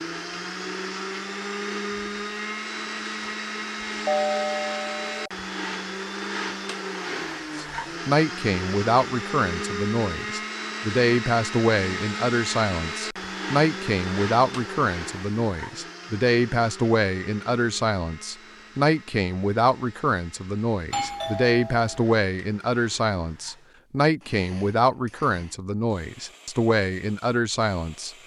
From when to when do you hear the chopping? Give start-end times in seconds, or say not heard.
not heard.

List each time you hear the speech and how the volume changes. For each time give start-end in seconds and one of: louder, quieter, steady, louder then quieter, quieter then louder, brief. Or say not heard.
7.5-28.1 steady.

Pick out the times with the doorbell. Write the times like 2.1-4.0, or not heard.
4.0-5.3, 20.9-22.0.